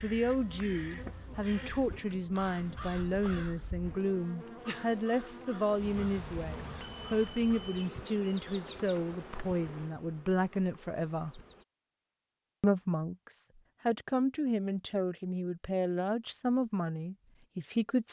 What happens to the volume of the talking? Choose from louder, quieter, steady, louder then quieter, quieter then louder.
steady.